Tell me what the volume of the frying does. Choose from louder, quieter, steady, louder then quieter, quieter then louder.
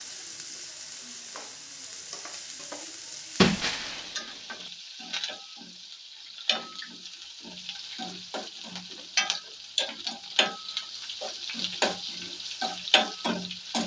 louder.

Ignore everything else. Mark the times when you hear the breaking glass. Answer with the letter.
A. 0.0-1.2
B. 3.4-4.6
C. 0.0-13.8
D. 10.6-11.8
B.